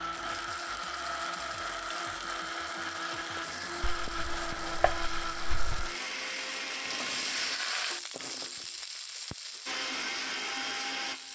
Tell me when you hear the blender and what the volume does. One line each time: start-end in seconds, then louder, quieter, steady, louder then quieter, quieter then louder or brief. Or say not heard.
0.0-7.6 steady
9.7-11.3 brief.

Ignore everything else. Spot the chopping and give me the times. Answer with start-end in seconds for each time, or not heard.
3.8-5.9.